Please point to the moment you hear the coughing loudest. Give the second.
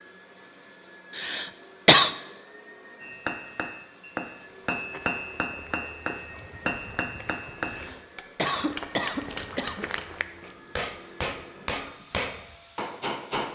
2 s.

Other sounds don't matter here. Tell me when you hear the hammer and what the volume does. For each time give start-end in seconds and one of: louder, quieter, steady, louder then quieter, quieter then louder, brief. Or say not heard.
3.0-13.4 steady.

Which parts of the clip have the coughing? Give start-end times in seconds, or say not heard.
1.1-2.1, 7.7-9.8.